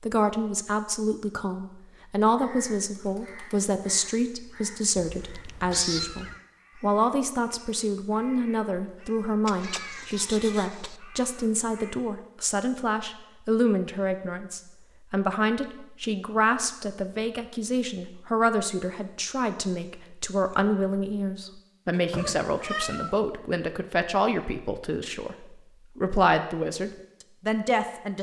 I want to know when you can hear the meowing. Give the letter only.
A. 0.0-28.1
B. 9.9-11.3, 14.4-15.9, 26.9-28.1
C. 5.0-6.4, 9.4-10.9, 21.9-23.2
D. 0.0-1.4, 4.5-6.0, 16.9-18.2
C.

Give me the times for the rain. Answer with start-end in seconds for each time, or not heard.
not heard.